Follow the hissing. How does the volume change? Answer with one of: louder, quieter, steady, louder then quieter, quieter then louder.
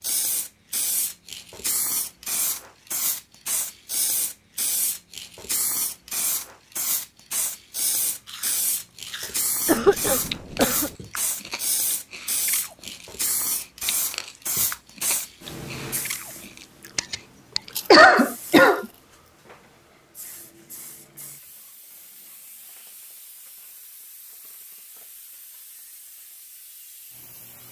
quieter.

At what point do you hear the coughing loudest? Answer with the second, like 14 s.
18 s.